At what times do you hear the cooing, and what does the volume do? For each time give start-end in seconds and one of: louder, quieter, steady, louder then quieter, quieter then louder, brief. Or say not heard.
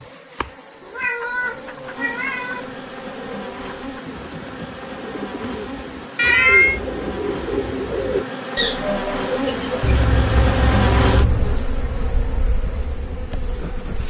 1.2-10.1 louder.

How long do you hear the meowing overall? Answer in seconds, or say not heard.
4 s.